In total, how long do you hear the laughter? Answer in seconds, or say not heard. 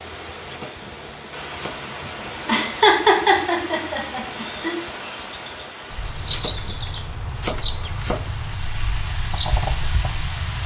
3 s.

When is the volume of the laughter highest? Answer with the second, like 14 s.
3 s.